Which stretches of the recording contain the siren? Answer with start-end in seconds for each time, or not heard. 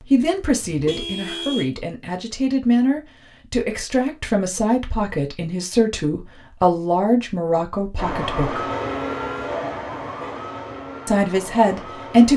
8.0-12.3.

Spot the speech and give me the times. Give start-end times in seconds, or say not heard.
0.0-8.7, 11.1-12.3.